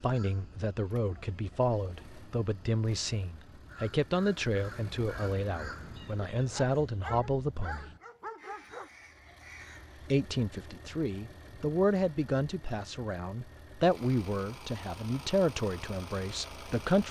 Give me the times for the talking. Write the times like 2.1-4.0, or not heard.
0.0-7.8, 10.1-17.0.